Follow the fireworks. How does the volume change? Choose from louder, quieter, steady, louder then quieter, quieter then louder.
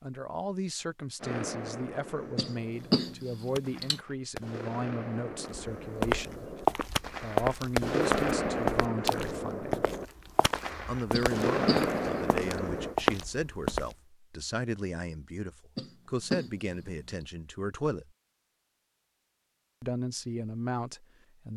louder.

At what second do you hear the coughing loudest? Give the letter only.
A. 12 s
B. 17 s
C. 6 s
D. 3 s
D.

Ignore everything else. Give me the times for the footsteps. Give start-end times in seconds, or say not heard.
5.7-13.9.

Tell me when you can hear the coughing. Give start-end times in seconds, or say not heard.
2.4-4.0, 11.1-12.2, 15.8-17.3.